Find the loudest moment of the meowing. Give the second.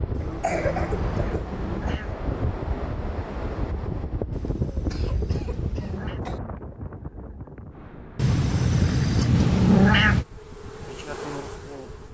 10 s.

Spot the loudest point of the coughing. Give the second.
1 s.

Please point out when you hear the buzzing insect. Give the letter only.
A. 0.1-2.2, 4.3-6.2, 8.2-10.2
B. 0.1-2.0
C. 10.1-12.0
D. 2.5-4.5
C.